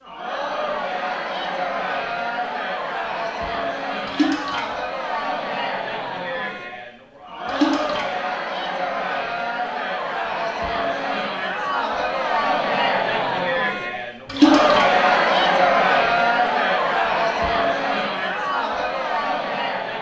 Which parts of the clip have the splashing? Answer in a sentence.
You can hear the splashing from 4.0 to 4.7 s, from 7.5 to 8.1 s and from 14.2 to 14.8 s.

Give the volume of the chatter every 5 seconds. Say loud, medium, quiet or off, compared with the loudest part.
medium, medium, loud, loud.